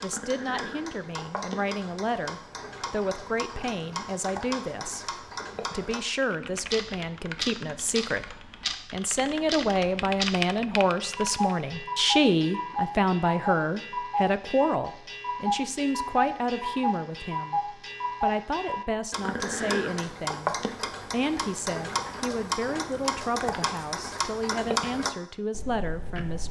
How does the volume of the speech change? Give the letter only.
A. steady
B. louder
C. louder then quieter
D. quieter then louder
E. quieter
C.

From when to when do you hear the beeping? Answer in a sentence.
The beeping can't be heard in this clip.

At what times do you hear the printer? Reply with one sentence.
The printer can't be heard in this clip.